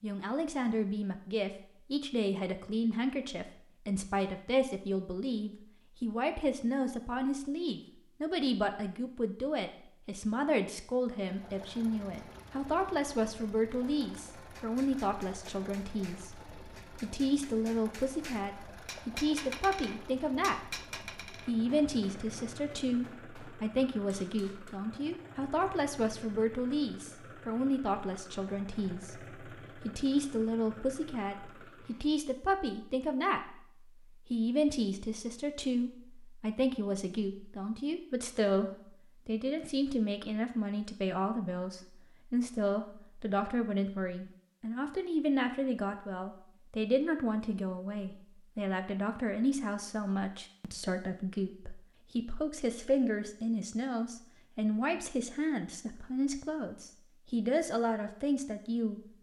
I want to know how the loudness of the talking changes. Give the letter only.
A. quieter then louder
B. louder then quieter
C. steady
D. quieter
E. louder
C.